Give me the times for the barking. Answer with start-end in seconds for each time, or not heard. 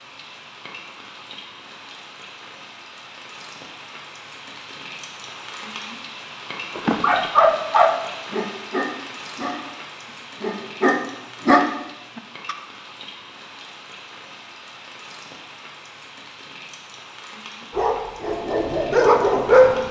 6.8-12.6, 17.8-19.8.